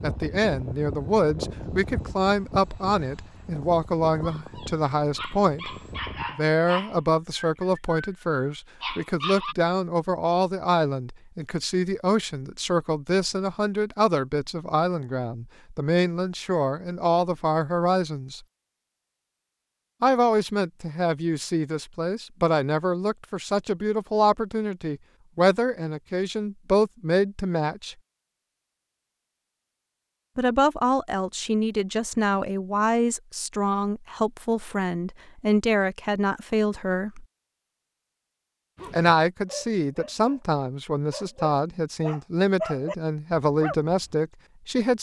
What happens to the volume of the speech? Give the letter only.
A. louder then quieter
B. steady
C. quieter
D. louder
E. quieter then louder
B.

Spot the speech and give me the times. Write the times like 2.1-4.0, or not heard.
0.0-5.8, 6.3-18.4, 20.0-27.9, 30.4-37.2, 38.9-44.9.